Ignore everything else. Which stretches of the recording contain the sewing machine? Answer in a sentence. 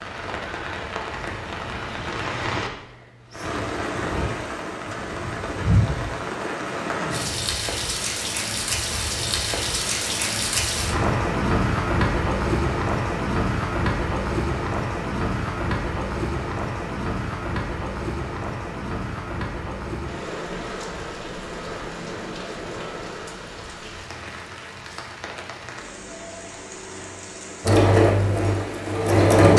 You can hear the sewing machine from 27.6 to 29.5 s.